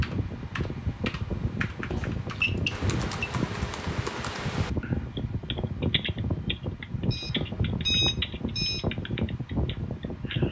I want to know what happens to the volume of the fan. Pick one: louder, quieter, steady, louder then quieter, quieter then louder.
steady.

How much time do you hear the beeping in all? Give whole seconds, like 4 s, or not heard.
3 s.